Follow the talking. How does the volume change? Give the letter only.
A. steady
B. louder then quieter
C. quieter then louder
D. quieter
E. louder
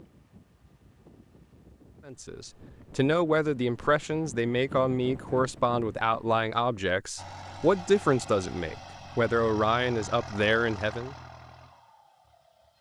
A.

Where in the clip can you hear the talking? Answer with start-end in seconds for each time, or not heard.
2.0-11.2.